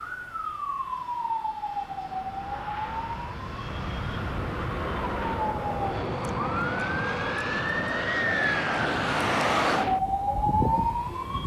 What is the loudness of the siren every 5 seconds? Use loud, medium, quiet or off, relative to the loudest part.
medium, loud, loud.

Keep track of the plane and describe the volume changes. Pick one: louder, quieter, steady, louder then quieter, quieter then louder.
louder.